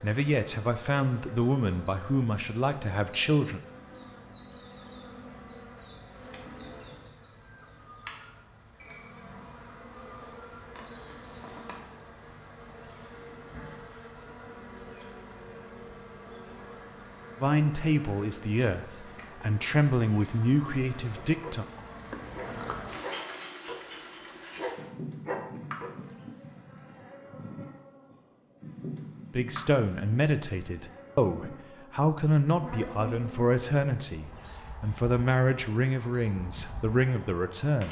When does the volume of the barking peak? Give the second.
25 s.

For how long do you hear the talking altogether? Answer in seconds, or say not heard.
16 s.